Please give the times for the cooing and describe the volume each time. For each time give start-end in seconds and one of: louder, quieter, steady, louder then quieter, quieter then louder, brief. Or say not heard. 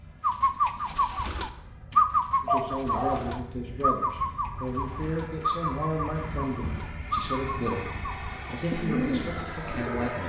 0.2-10.2 quieter.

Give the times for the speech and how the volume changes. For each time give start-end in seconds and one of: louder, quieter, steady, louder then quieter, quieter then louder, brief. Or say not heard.
2.4-10.2 steady.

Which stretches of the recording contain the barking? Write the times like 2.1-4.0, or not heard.
2.5-3.5.